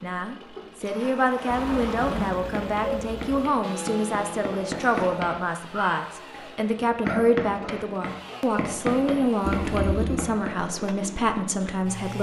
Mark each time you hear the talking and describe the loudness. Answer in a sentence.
The talking can be heard from 0.0 to 12.1 s, at a steady volume.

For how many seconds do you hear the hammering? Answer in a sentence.
The hammering can be heard for 8 seconds in total.